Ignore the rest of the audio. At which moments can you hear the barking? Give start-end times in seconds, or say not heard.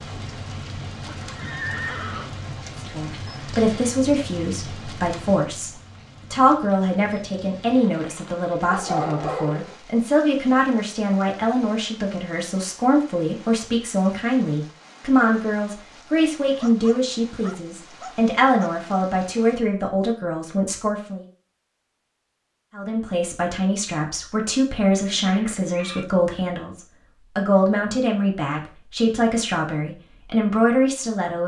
8.7-9.8, 16.6-18.8.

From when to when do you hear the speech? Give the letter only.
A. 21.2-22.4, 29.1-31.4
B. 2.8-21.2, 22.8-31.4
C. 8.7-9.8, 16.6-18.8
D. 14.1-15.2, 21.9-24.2
B.